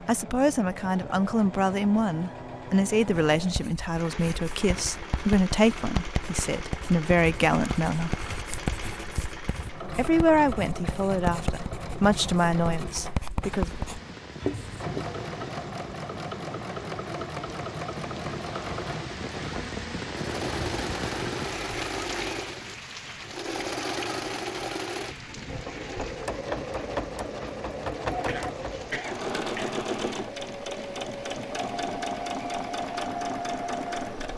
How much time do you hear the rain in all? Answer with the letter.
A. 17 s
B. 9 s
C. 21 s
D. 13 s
C.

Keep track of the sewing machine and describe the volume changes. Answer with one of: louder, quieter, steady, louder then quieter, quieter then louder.
louder.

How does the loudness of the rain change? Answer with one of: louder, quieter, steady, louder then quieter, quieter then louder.
louder then quieter.